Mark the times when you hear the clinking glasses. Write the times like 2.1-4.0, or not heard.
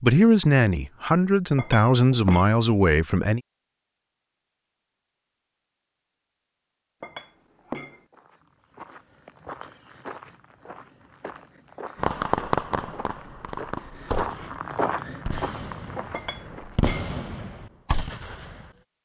1.6-2.5, 7.0-8.0, 16.1-17.1.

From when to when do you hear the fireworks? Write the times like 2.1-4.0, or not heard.
11.9-18.6.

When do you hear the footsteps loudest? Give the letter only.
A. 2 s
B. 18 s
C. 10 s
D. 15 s
D.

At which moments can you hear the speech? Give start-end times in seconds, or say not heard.
0.0-3.4.